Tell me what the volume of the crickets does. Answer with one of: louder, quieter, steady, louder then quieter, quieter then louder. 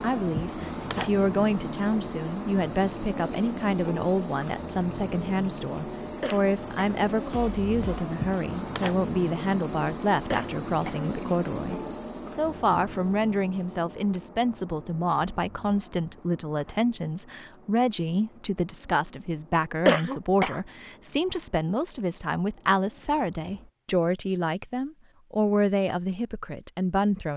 quieter.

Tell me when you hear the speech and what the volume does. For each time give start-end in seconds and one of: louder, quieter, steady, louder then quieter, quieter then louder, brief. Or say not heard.
0.0-27.3 steady.